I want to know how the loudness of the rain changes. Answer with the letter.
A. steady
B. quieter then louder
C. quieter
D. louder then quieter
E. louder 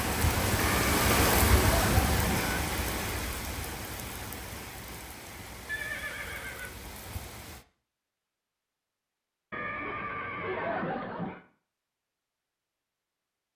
C.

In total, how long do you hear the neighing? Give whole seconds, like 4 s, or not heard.
5 s.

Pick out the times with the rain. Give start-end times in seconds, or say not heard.
0.0-7.7.